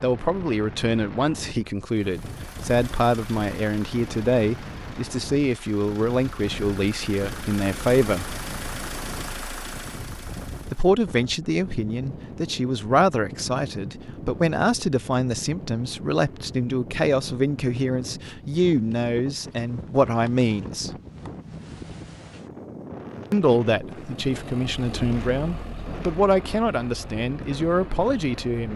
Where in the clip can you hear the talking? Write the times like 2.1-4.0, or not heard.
0.0-8.3, 10.7-20.9, 23.3-28.7.